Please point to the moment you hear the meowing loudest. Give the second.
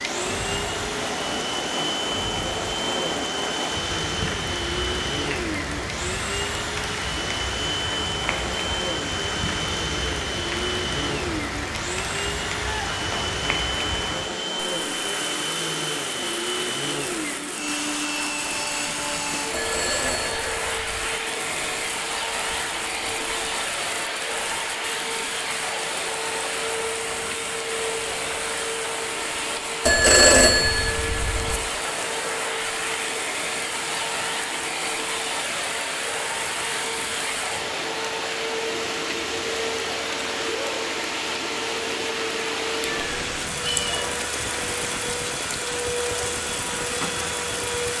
44 s.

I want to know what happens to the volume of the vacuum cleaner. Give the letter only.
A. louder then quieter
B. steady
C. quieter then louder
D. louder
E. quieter
B.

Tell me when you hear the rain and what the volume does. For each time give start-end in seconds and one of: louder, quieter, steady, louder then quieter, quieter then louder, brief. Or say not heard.
0.0-47.9 steady.